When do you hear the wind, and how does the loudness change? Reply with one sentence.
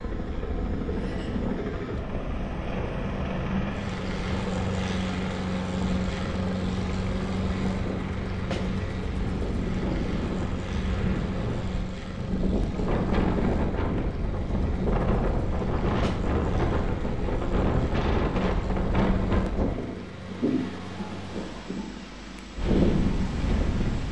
The wind can be heard from 0.0 to 24.0 s, getting louder.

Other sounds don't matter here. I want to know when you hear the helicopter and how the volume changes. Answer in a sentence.
The helicopter can be heard from 0.0 to 24.0 s, getting quieter.